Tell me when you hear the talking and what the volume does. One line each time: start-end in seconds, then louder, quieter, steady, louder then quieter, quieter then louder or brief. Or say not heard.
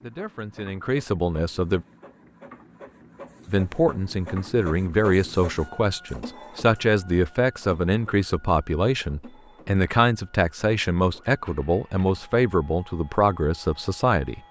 0.0-1.9 brief
3.5-14.4 steady.